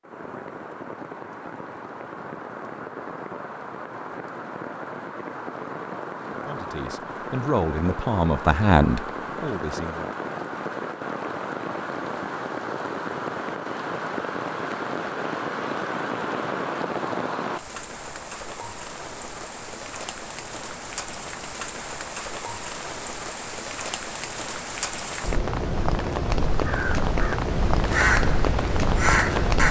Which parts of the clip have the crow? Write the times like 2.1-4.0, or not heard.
26.6-29.6.